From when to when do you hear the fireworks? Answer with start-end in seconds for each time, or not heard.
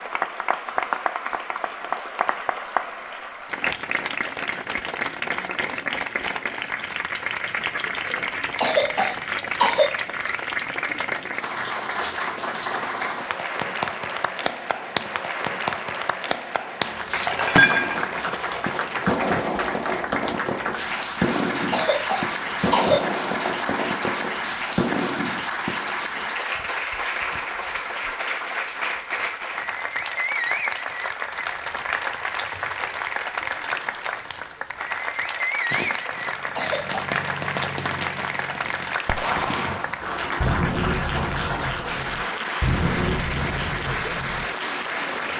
17.1-25.9, 35.7-44.5.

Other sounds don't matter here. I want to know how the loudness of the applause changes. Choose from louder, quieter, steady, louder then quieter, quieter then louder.
steady.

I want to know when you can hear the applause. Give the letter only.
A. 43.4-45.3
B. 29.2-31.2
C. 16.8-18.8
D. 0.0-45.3
D.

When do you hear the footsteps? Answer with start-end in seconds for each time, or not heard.
not heard.